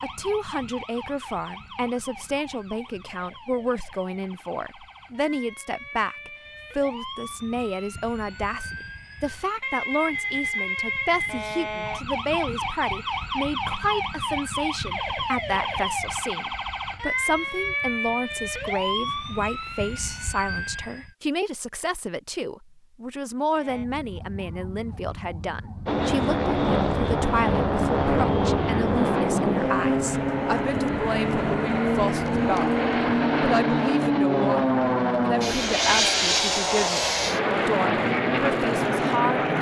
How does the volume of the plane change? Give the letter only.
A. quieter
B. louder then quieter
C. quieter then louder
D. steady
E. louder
D.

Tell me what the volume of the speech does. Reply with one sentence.
The loudness of the speech stays about the same.